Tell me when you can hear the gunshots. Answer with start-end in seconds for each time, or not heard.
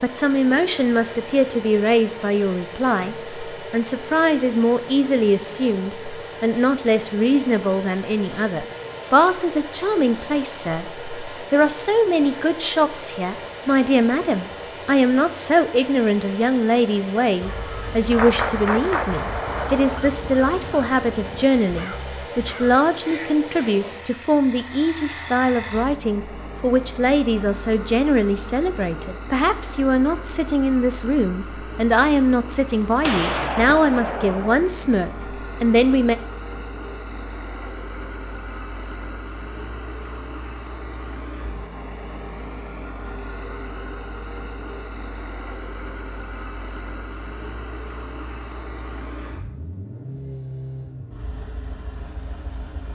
18.1-20.0, 33.0-34.5.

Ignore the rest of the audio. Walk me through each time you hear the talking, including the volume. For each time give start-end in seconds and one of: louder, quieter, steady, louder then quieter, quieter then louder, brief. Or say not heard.
0.0-36.1 steady.